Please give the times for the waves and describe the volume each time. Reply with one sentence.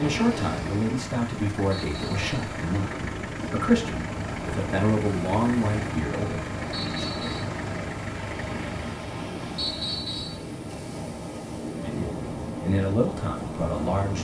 The waves can be heard from 0.0 to 14.1 s, at a steady volume.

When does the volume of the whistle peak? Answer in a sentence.
The volume of the whistle peaks at 10 seconds.